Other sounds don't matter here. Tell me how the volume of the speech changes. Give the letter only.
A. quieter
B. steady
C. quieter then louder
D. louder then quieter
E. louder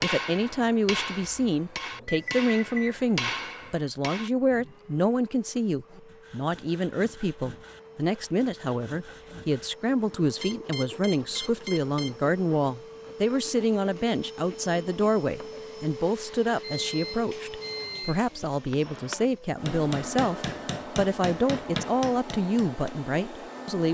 B.